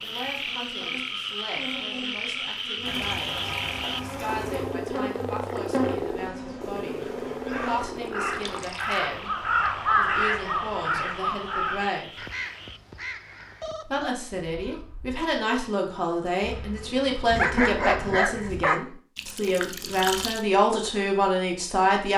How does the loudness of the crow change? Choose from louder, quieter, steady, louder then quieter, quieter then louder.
louder then quieter.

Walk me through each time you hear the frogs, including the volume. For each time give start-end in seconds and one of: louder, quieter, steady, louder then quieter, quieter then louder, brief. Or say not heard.
0.0-12.8 quieter.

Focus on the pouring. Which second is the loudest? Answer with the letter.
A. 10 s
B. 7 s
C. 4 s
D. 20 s
D.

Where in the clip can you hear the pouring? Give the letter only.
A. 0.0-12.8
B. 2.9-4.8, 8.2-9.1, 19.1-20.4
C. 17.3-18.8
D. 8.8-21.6
B.